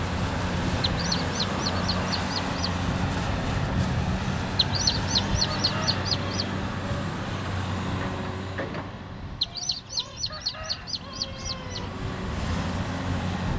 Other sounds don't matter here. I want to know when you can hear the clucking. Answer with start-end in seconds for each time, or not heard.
0.8-2.8, 4.5-6.5, 9.4-11.9.